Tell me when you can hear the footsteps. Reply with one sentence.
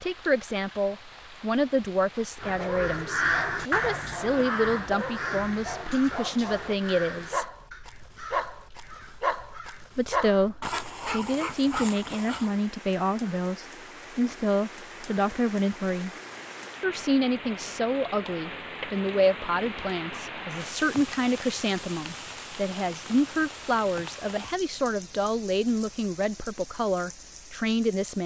You can't hear the footsteps here.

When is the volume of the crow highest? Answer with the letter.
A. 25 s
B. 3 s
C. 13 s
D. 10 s
B.